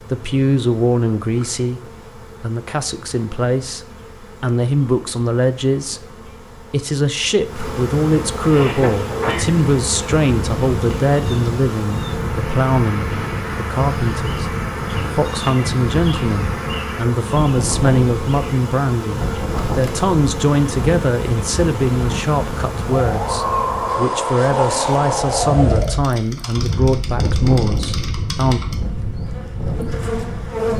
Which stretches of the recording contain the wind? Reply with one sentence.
You can hear the wind from 8.3 to 30.7 s.